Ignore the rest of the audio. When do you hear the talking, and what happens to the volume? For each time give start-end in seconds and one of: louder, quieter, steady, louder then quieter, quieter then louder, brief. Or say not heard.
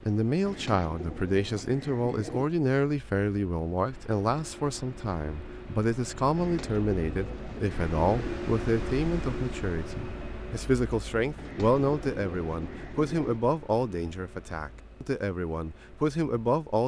0.0-16.8 steady.